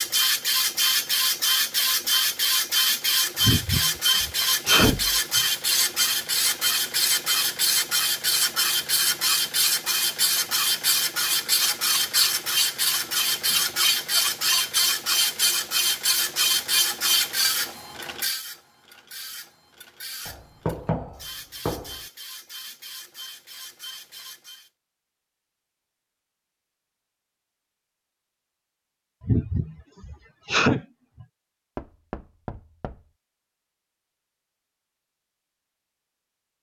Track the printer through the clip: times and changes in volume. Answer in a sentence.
You can hear the printer from 0.0 to 24.7 s, getting quieter.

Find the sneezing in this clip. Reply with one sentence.
The sneezing can be heard from 3.4 to 5.4 s and from 29.2 to 31.2 s.